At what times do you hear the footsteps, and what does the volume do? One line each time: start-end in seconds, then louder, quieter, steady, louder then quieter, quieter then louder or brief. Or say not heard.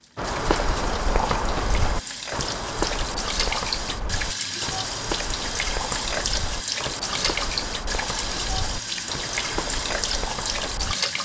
0.1-10.9 quieter.